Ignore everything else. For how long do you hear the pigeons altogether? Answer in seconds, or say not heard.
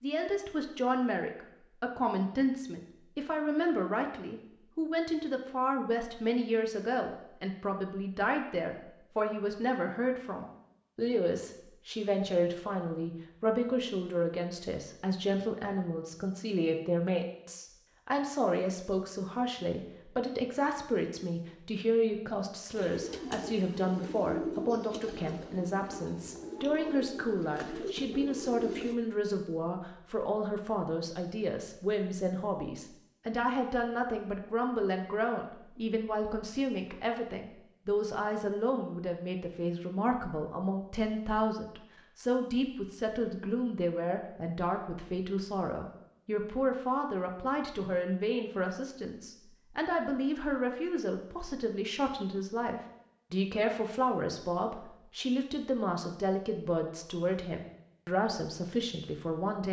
6 s.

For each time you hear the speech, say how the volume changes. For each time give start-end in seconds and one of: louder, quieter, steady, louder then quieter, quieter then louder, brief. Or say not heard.
0.0-59.6 steady.